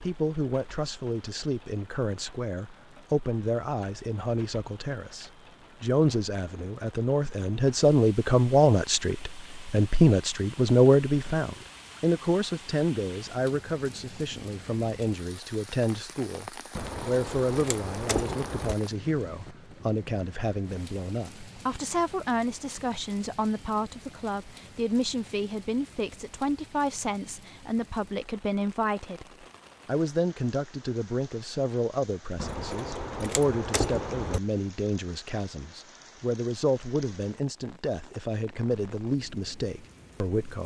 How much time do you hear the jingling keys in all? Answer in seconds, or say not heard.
4 s.